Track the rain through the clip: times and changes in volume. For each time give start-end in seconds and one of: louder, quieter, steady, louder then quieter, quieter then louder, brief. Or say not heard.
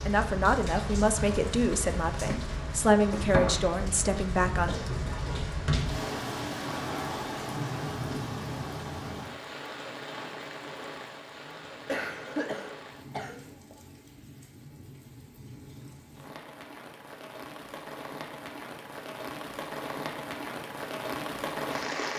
0.0-22.1 quieter then louder.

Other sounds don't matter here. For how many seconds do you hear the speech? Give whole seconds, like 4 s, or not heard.
5 s.